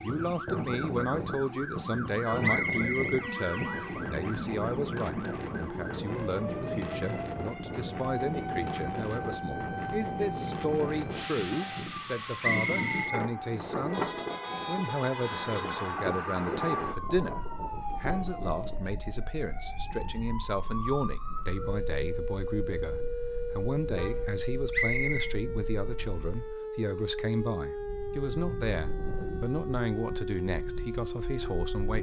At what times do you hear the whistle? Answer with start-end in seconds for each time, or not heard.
2.4-4.0, 12.4-13.2, 24.7-25.4.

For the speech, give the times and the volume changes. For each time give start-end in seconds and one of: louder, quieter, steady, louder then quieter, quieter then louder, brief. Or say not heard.
0.0-31.9 steady.